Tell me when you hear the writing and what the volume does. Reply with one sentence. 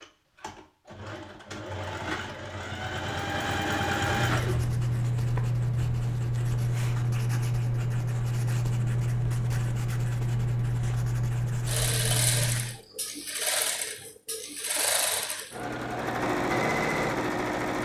You can hear the writing from 4.0 to 12.8 s, at a steady volume.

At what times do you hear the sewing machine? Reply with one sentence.
The sewing machine can be heard from 0.0 to 4.9 s and from 11.7 to 17.8 s.